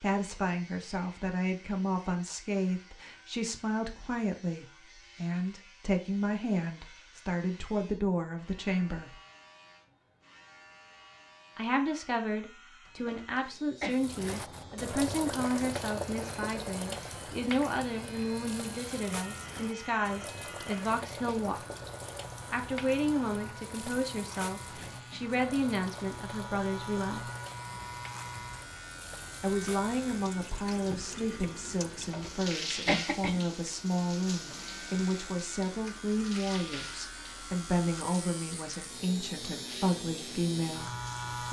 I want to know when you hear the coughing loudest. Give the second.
33 s.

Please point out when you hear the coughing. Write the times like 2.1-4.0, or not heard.
12.8-14.1, 31.9-33.5.